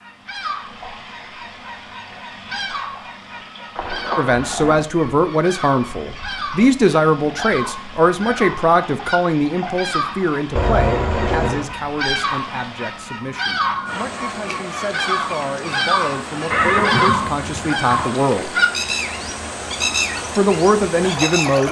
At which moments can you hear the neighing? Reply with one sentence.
The neighing can be heard from 3.8 to 4.8 s, from 10.6 to 11.7 s and from 16.5 to 18.1 s.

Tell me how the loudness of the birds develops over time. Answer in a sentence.
The loudness of the birds goes up.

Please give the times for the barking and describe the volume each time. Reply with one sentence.
The barking can't be heard in this clip.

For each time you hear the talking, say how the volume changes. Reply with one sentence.
The talking can be heard from 4.2 to 18.5 s, getting quieter then louder; and briefly from 20.4 to 21.6 s.